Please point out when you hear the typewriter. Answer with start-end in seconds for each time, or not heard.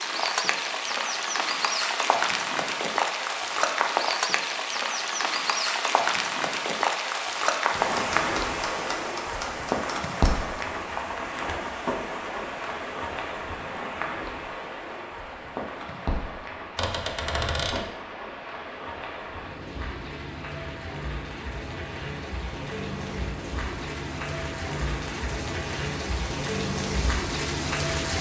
7.9-10.4, 16.8-17.9.